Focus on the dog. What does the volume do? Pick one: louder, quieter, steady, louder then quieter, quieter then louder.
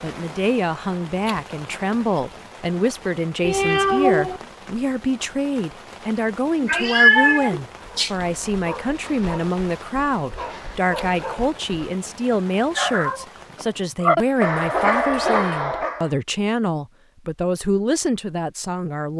louder.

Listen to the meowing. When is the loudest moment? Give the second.
7 s.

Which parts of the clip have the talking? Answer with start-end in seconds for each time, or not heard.
0.0-19.1.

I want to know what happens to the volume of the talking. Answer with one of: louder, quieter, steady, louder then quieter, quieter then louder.
steady.